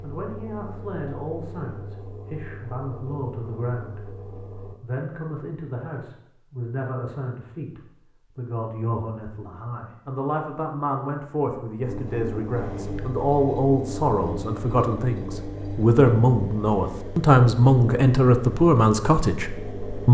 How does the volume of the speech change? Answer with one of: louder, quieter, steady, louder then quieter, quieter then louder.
louder.